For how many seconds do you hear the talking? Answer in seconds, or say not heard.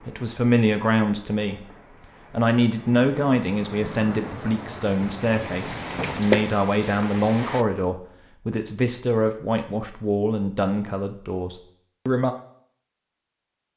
12 s.